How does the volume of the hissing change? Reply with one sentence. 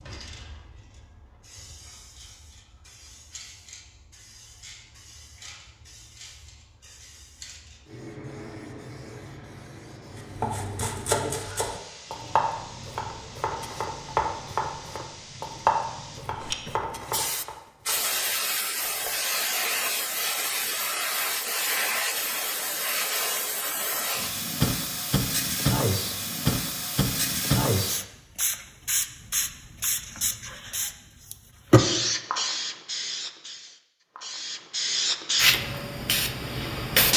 The loudness of the hissing goes up.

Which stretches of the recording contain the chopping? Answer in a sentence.
The chopping can be heard from 10.2 to 19.4 s.